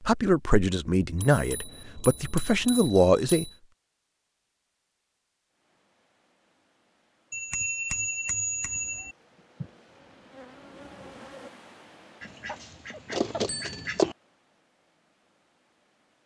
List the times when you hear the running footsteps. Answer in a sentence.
The running footsteps can't be heard in this clip.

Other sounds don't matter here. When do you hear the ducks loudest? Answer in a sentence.
The volume of the ducks peaks at 14 seconds.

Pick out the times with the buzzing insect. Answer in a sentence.
You can hear the buzzing insect from 9.0 to 11.5 s.